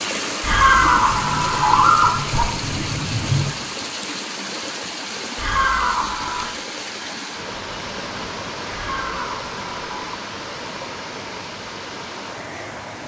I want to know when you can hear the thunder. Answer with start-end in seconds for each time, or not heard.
0.8-3.5.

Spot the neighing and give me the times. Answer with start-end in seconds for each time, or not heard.
0.4-2.5, 5.3-6.5, 8.7-10.2.